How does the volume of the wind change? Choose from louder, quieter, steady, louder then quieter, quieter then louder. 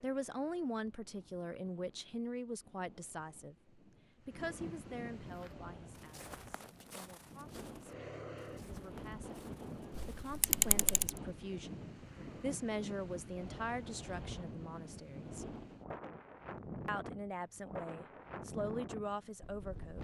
louder.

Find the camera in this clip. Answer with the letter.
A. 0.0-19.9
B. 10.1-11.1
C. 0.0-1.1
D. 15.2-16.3
B.